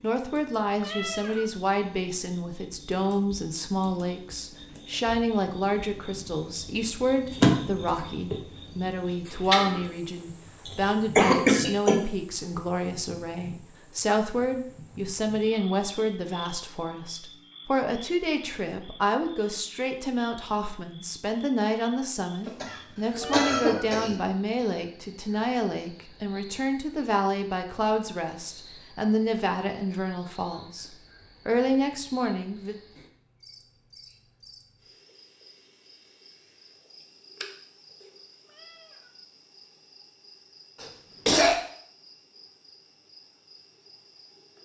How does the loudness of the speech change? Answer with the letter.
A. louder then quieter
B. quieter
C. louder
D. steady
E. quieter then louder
D.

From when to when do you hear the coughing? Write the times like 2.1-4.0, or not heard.
10.7-12.1, 22.4-24.2, 40.8-41.5.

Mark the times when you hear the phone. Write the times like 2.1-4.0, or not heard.
not heard.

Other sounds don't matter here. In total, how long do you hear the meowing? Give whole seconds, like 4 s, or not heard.
2 s.